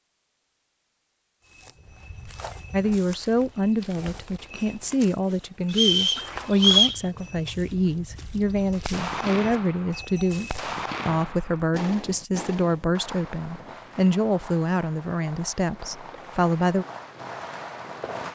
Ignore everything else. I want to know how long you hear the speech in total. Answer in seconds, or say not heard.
14 s.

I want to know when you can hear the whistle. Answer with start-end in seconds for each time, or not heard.
5.7-7.0.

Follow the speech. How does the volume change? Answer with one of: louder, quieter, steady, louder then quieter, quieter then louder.
steady.